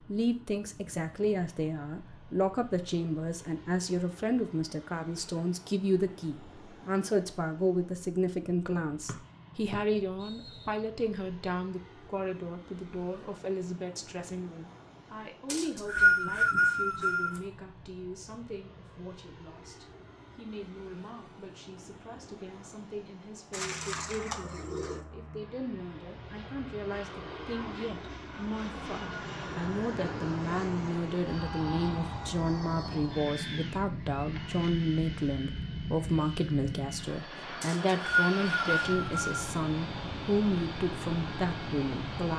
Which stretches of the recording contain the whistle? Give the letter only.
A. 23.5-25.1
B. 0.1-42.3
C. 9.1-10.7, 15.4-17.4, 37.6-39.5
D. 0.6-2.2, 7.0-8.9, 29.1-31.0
C.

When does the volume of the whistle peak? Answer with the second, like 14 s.
16 s.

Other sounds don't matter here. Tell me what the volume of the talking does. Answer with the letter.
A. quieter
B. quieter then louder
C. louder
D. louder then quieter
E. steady
B.